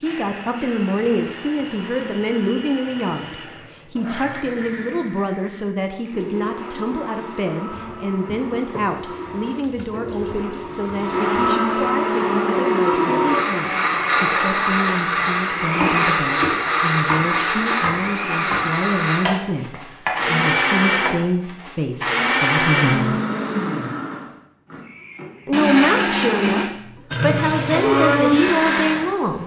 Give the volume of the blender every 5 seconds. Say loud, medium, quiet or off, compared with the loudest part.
quiet, quiet, loud, loud, loud, loud.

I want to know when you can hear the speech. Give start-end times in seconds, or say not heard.
0.0-23.2, 25.4-29.4.